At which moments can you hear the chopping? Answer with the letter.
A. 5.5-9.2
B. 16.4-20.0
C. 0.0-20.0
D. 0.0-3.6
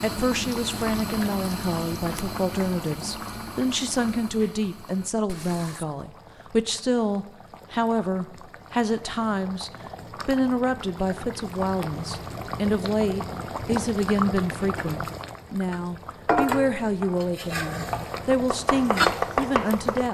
B.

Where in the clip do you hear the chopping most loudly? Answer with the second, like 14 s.
19 s.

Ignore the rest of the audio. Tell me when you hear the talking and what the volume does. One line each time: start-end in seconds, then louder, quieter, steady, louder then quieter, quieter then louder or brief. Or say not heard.
0.0-20.0 steady.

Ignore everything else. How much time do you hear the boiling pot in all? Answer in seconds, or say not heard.
20 s.